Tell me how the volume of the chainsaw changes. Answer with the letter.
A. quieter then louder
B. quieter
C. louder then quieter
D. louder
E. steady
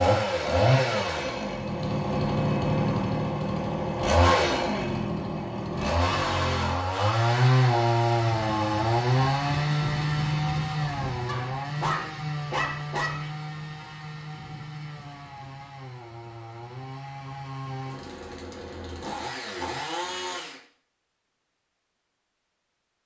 B.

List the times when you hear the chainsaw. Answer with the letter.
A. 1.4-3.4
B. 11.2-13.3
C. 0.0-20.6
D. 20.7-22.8
C.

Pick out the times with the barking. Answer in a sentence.
The barking can be heard from 11.2 to 13.3 s.